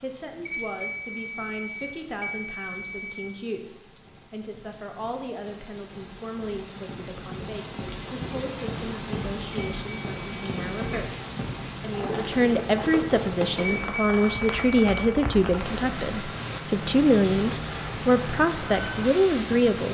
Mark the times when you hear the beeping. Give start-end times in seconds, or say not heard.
0.5-3.2, 9.5-11.0, 13.6-15.1.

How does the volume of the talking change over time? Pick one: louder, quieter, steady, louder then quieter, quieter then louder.
louder.